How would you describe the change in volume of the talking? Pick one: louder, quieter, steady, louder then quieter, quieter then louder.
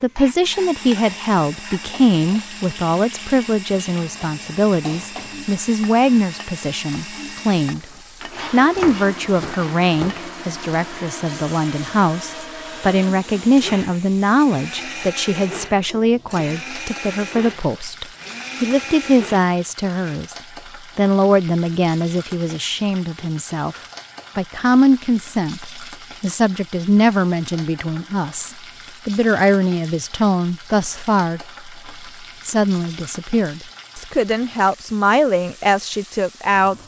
steady.